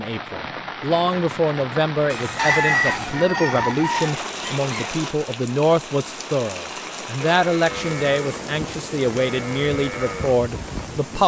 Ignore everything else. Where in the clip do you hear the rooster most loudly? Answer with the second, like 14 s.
3 s.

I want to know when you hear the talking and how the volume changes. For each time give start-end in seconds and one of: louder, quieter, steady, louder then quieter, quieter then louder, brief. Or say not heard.
0.0-11.2 steady.